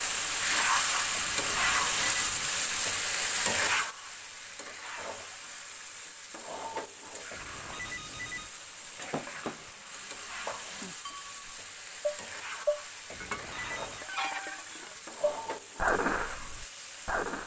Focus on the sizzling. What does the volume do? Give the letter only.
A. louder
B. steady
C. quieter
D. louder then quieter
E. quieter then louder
C.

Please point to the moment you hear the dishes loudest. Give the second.
16 s.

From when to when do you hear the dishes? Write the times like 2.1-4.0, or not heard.
8.9-17.4.